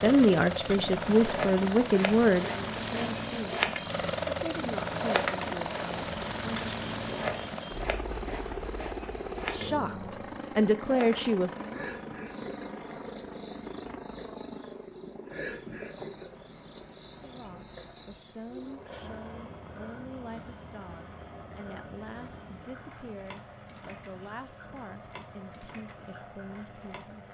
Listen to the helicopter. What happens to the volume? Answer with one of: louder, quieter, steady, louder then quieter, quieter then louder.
quieter.